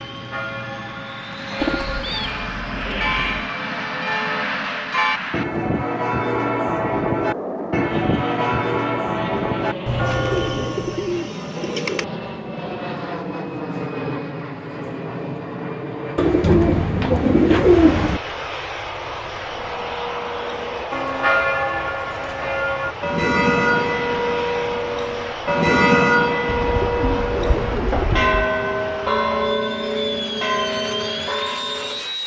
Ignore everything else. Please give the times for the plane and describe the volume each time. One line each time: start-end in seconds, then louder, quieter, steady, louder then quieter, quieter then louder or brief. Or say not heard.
0.0-32.2 steady.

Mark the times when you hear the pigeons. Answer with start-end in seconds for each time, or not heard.
1.6-3.5, 10.1-12.1, 16.1-18.2, 26.4-28.4.